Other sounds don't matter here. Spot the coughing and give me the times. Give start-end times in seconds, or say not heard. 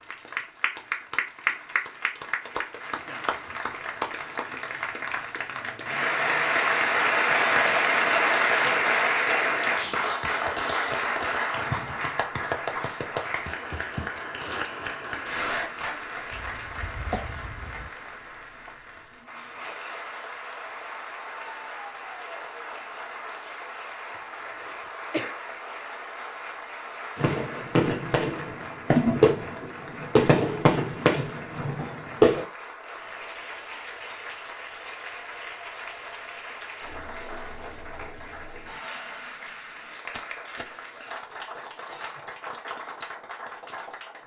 16.3-17.9, 24.1-25.4.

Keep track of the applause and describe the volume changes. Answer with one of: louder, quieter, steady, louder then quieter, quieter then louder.
quieter.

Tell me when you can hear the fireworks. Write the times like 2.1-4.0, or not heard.
27.1-32.5.